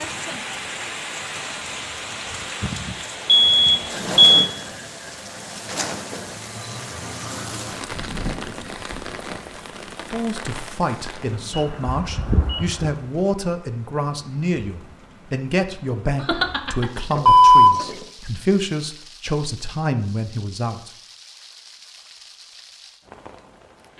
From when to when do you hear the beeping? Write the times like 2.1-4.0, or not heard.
3.2-4.2, 11.5-12.9, 16.2-18.0.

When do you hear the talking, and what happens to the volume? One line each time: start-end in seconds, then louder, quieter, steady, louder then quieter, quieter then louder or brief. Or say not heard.
10.1-20.9 steady.